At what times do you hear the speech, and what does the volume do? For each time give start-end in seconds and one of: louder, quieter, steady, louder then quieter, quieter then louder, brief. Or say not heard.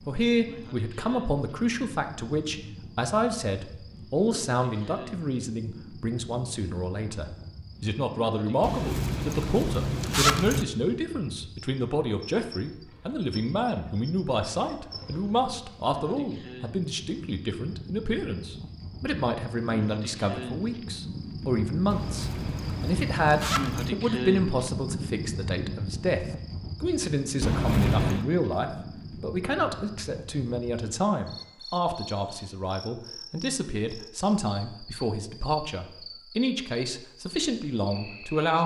0.1-38.6 steady.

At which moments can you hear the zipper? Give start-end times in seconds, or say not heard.
8.6-10.7, 21.9-23.9, 27.4-28.2.